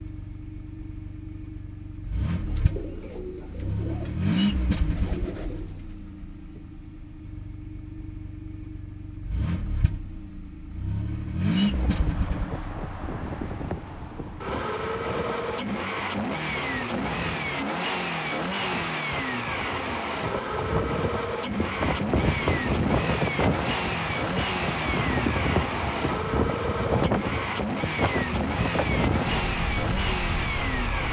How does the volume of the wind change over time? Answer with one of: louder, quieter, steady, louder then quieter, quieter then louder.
louder.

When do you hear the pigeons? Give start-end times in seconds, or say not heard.
2.3-6.2.